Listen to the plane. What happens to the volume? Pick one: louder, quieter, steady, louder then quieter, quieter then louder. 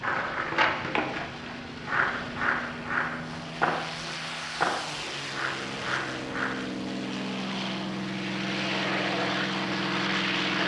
louder.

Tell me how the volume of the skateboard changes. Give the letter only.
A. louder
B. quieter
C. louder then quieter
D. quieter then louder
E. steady
B.